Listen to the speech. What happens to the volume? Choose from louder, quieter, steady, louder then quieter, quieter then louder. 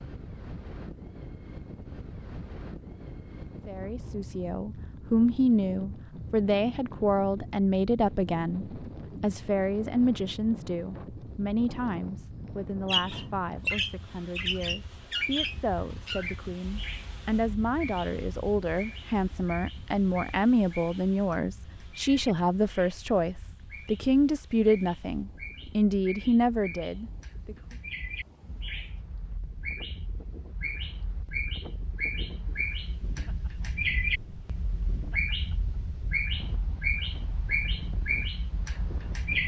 quieter then louder.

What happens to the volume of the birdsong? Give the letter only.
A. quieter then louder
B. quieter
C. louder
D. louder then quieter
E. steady
A.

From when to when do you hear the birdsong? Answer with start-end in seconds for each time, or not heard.
12.8-39.4.